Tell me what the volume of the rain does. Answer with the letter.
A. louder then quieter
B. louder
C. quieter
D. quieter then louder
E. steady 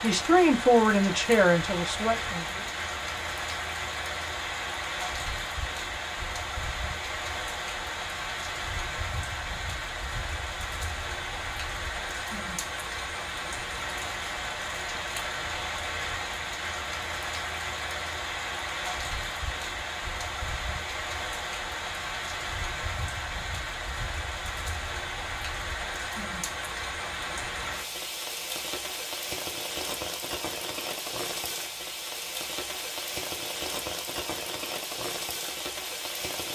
E.